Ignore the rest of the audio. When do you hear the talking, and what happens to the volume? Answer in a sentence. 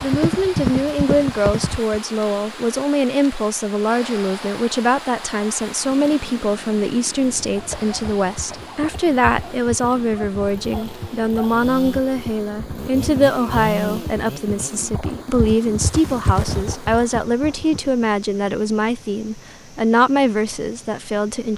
The talking can be heard from 0.0 to 21.5 s, at a steady volume.